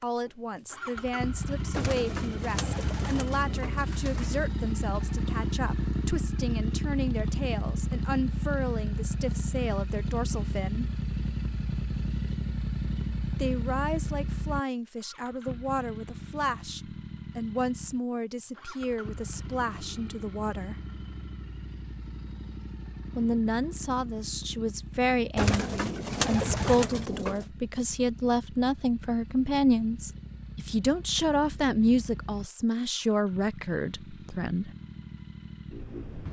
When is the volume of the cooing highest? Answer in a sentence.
The volume of the cooing peaks at 26 seconds.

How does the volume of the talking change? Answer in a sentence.
The volume of the talking goes up.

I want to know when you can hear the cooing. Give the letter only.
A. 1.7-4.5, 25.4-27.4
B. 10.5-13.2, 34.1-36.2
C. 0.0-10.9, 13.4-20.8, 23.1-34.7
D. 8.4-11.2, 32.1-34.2
A.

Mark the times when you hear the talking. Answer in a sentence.
The talking can be heard from 0.0 to 10.9 s, from 13.4 to 20.8 s and from 23.1 to 34.7 s.